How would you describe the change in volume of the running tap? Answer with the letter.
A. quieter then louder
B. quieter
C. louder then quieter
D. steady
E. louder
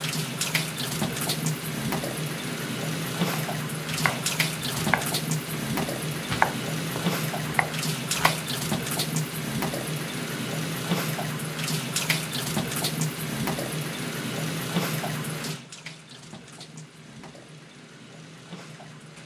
B.